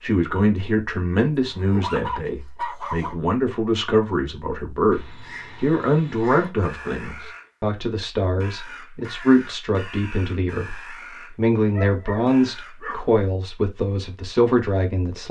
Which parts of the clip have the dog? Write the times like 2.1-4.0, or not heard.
1.3-3.1, 5.7-7.3, 11.7-13.2.